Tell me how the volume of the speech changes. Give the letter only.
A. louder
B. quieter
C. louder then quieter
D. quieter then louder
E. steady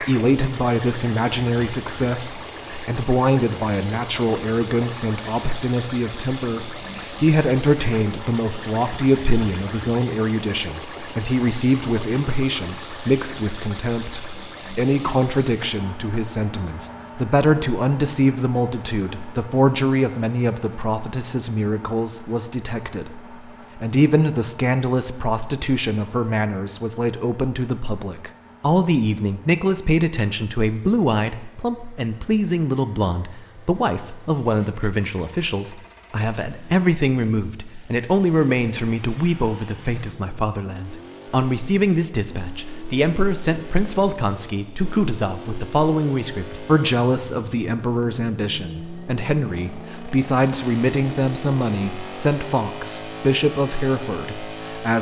E.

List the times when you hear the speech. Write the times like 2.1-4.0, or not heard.
0.0-54.9.